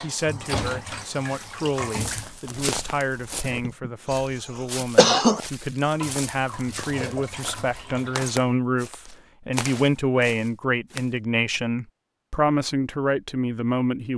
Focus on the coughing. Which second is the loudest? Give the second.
5 s.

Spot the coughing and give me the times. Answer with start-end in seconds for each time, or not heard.
3.5-4.2, 5.0-5.4.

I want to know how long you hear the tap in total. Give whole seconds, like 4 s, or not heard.
6 s.